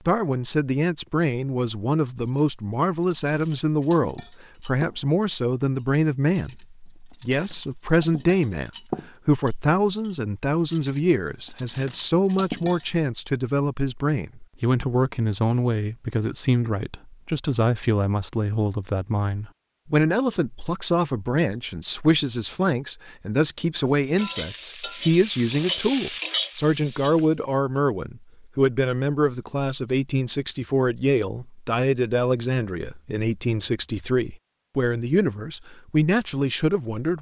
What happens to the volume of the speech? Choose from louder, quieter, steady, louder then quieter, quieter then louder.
steady.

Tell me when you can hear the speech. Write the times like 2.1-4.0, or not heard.
0.1-37.1.